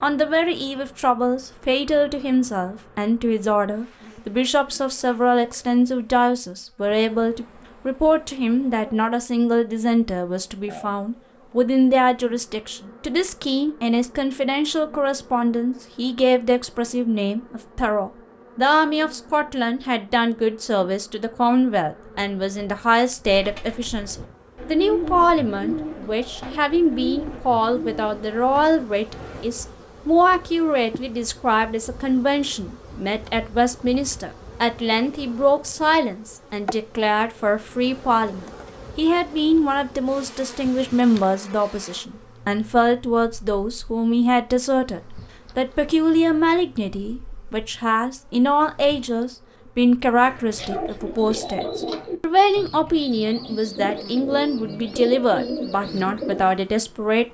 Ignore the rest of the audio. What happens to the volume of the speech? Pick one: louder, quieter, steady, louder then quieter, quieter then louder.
steady.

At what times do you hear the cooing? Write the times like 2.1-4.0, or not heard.
23.2-29.4, 50.2-56.5.